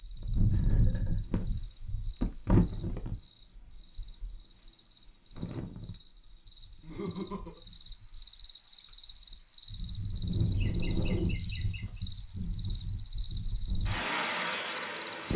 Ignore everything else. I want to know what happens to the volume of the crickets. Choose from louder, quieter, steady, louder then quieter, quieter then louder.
louder.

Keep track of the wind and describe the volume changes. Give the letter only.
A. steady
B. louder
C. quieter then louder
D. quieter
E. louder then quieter
C.